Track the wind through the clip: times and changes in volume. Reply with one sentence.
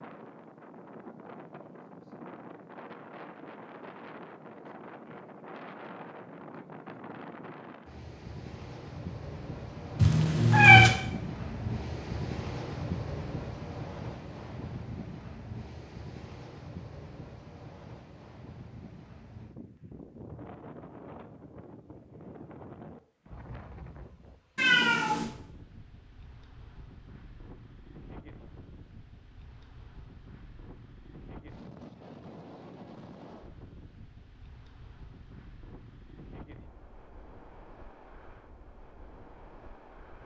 The wind can be heard from 0.0 to 40.2 s, getting louder then quieter.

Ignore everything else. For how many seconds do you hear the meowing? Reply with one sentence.
The meowing can be heard for 2 seconds in total.